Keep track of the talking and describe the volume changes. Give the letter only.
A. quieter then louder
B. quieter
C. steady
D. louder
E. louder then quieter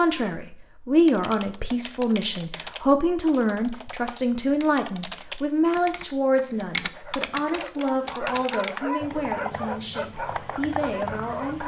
B.